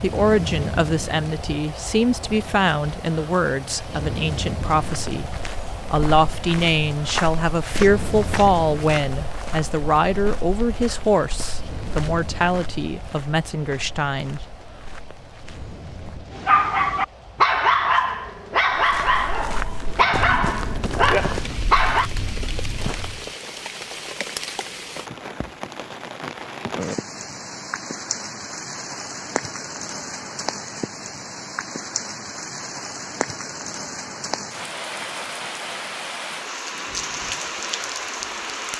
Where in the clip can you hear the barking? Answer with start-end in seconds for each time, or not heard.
16.3-22.1.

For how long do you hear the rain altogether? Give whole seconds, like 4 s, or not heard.
39 s.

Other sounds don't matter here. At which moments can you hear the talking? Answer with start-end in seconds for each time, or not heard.
0.0-14.4.